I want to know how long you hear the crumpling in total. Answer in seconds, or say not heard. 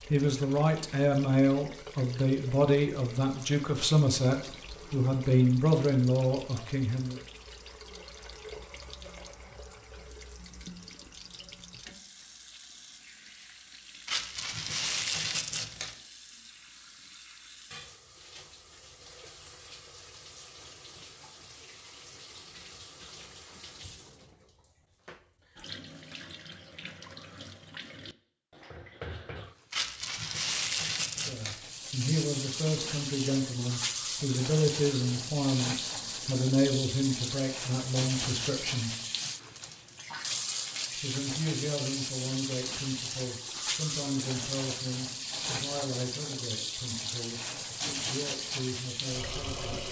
4 s.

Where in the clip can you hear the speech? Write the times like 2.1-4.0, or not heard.
0.1-7.2, 31.1-39.0, 41.0-49.7.